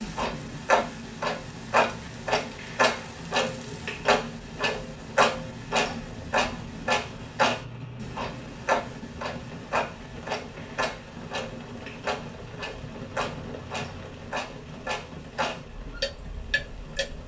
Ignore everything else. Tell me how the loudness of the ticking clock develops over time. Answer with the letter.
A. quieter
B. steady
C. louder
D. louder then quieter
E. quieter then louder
A.